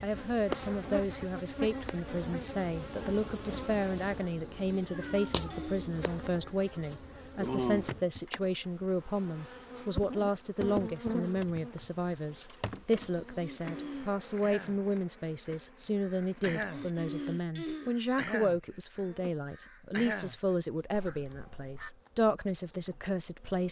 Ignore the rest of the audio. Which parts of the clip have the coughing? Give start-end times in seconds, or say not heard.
4.5-6.0, 13.1-14.1, 16.5-17.9.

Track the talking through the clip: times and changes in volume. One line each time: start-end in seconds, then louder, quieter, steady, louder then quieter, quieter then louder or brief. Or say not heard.
0.0-23.6 steady.